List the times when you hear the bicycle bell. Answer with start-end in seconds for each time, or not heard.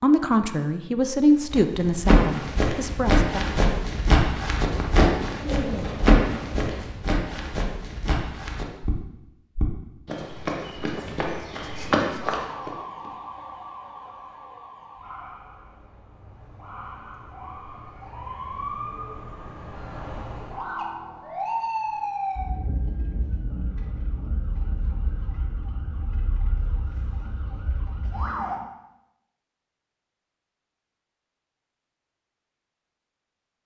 not heard.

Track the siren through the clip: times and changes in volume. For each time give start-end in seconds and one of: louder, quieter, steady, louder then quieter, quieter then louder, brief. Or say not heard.
12.2-28.6 louder then quieter.